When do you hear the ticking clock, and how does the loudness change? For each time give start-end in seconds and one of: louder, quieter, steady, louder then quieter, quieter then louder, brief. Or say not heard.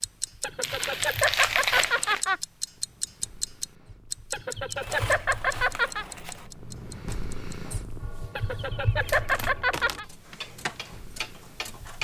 0.0-11.9 quieter then louder.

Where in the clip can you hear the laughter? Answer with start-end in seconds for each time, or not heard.
0.4-2.4, 4.3-6.0, 8.3-10.1.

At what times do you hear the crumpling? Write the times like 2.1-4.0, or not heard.
0.6-2.2, 4.8-6.5, 9.1-10.0.